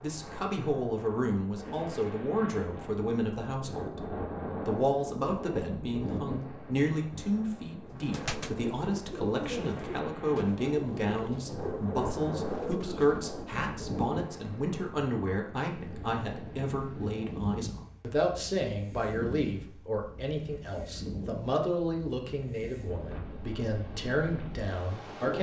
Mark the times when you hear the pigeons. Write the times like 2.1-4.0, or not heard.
7.8-13.4.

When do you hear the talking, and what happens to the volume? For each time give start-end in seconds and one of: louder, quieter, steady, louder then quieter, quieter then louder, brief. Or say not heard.
0.0-25.3 steady.